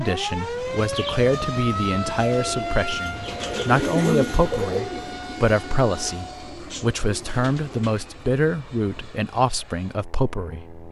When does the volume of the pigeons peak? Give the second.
4 s.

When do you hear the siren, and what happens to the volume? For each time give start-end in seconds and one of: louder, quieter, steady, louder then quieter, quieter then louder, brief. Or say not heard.
0.0-6.7 quieter.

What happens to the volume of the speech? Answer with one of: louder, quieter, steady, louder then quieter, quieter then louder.
steady.